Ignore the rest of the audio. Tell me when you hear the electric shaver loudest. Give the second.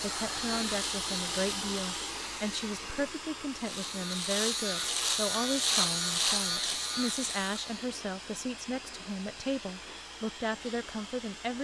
6 s.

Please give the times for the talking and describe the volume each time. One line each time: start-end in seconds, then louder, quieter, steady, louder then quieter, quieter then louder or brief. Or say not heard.
0.0-11.5 steady.